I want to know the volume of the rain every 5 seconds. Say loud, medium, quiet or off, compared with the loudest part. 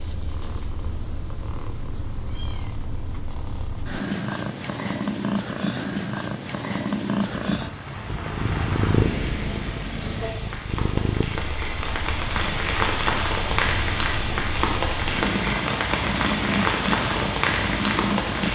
off, medium, loud, loud.